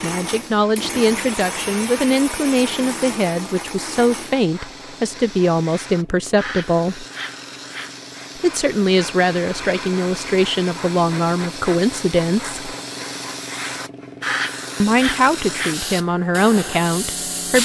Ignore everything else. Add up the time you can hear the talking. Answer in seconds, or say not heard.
14 s.